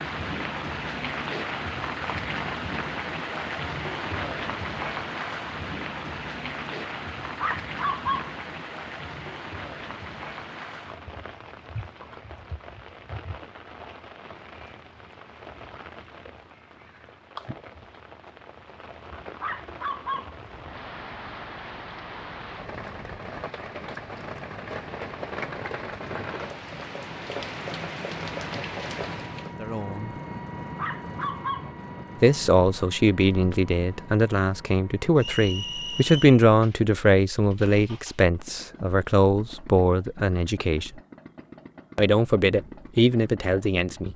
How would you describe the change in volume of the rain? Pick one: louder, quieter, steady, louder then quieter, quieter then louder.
quieter then louder.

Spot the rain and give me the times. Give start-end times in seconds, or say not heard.
0.0-29.6.